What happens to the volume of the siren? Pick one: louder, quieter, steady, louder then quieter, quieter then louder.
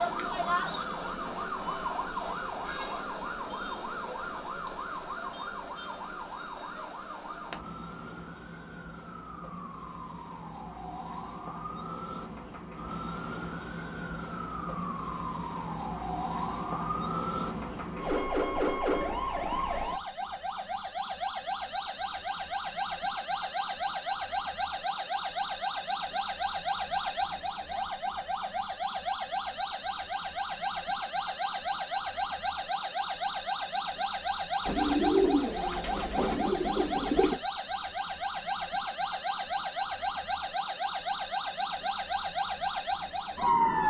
louder.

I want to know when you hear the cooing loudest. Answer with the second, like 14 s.
35 s.